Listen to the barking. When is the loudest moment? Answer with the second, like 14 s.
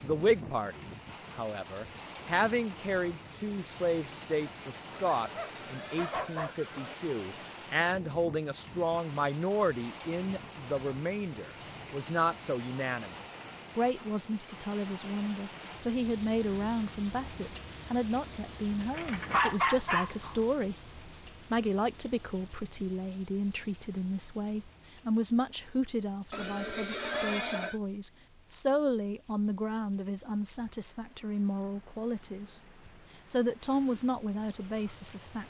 20 s.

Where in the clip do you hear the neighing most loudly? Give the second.
27 s.